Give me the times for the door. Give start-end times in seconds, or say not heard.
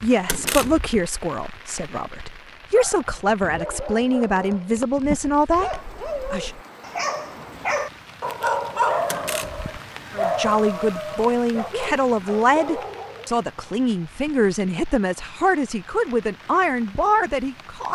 0.2-1.0, 9.1-9.7.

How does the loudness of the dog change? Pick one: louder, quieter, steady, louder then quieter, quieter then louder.
louder then quieter.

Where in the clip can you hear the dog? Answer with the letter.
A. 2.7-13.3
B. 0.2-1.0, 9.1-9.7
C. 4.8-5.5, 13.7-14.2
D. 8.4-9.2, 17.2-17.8
A.